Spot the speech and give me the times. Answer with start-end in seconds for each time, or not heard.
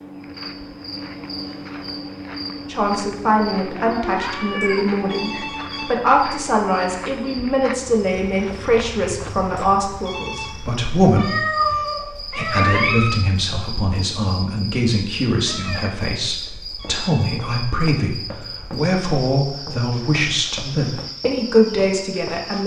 2.5-22.6.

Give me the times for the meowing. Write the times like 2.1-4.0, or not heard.
3.7-5.5, 11.2-13.2, 15.4-17.1.